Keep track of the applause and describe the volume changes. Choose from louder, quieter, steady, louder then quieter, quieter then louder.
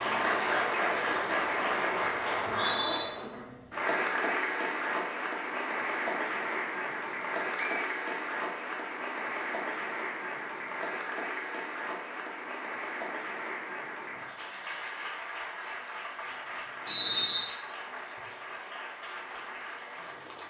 quieter.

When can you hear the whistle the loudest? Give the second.
17 s.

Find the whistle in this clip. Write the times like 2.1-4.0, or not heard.
2.4-3.0, 7.5-8.0, 16.9-17.4.